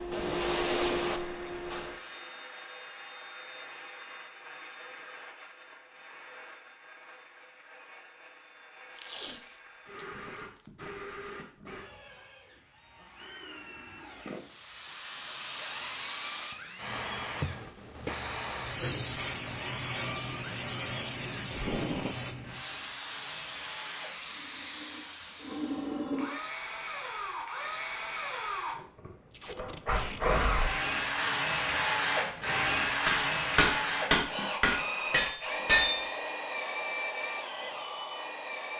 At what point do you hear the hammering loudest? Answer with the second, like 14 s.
36 s.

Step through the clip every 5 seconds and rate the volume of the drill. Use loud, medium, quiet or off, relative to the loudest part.
quiet, quiet, quiet, quiet, quiet, medium, loud, medium.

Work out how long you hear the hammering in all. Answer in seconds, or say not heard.
5 s.